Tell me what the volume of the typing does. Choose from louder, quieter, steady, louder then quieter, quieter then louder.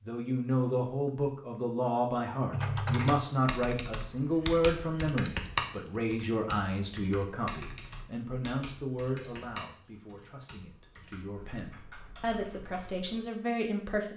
quieter.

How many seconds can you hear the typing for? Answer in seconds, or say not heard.
11 s.